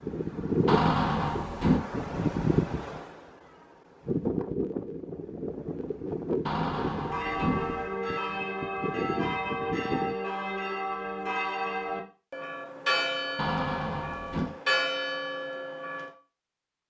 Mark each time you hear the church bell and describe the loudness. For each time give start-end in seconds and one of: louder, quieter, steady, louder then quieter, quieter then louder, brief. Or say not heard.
7.0-16.1 steady.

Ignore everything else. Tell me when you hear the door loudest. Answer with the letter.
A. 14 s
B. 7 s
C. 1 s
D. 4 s
C.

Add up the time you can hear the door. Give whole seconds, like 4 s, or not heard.
4 s.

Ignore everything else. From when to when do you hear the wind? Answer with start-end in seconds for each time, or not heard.
0.0-10.2.